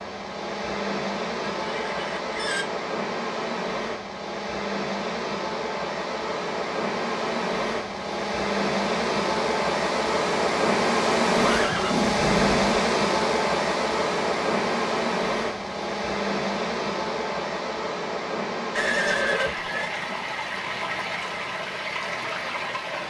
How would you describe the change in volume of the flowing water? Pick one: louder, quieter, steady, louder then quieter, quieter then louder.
louder then quieter.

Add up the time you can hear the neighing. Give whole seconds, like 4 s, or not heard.
4 s.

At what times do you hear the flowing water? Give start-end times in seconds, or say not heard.
0.0-23.0.